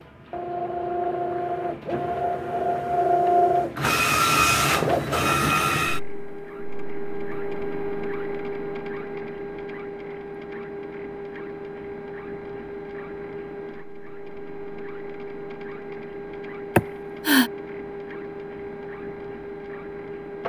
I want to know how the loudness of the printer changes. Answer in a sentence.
The volume of the printer goes down.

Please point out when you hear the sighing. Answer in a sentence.
You can hear the sighing from 16.8 to 17.5 s.